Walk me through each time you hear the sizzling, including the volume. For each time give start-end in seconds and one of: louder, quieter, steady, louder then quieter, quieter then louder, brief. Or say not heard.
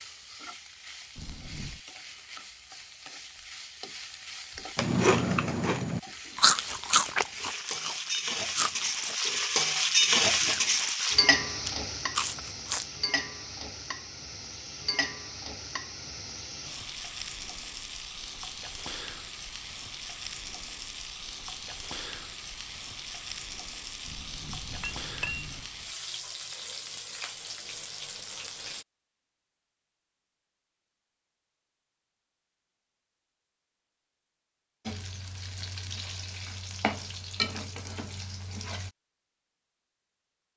0.0-28.9 louder then quieter
34.9-38.9 louder then quieter.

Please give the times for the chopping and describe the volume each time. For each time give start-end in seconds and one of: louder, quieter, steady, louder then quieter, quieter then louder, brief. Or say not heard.
not heard.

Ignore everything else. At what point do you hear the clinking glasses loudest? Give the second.
25 s.